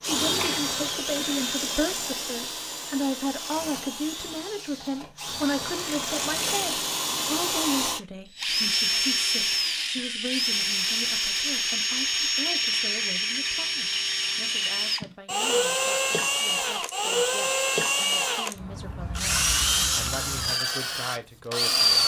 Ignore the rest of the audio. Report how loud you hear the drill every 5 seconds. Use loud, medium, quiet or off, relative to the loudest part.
medium, loud, loud, loud, loud.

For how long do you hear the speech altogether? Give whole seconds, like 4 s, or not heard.
22 s.